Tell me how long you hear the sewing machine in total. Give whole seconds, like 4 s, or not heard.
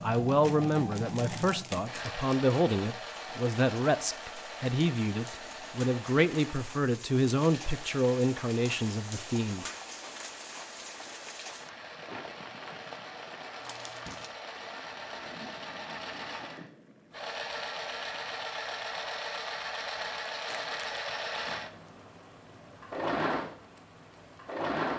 25 s.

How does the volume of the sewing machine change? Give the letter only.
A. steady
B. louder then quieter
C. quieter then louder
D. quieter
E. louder
C.